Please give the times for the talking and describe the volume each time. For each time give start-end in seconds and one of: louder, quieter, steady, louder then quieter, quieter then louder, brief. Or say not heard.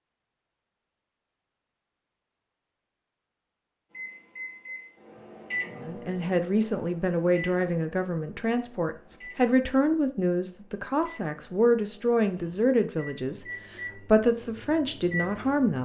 5.8-15.8 steady.